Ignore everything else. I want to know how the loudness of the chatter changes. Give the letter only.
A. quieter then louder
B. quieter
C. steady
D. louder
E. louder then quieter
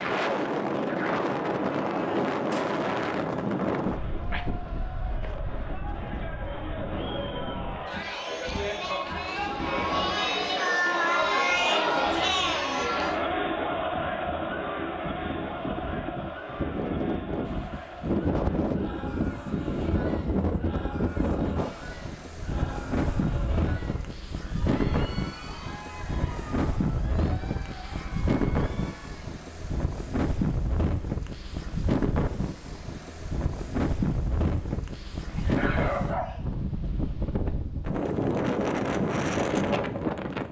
E.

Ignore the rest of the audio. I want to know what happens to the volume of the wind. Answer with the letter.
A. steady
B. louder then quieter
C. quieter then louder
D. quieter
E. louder
C.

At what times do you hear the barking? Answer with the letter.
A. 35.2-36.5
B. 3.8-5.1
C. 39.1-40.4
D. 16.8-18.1
A.